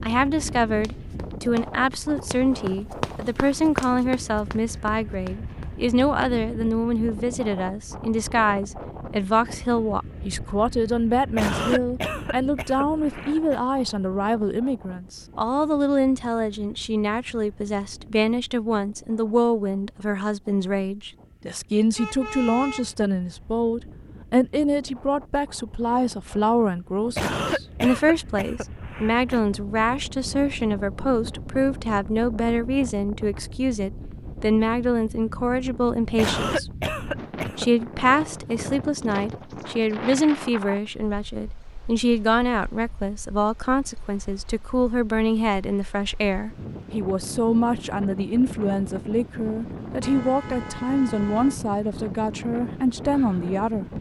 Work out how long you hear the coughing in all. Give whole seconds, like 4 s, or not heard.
6 s.